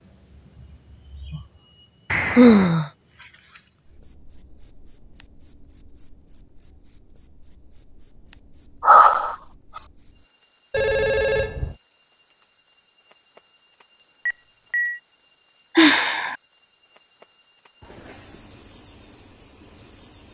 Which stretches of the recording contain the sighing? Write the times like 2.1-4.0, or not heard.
2.4-2.9, 8.8-9.8, 15.8-16.4.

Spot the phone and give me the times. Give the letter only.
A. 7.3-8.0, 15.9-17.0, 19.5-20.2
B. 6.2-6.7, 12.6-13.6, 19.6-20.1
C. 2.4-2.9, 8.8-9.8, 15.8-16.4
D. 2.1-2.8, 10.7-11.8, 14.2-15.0
D.